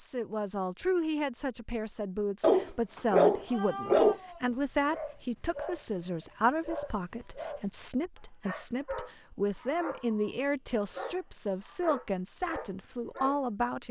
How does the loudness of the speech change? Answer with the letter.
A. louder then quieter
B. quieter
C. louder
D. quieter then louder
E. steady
E.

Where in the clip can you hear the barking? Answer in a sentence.
The barking can be heard from 2.4 to 13.4 s.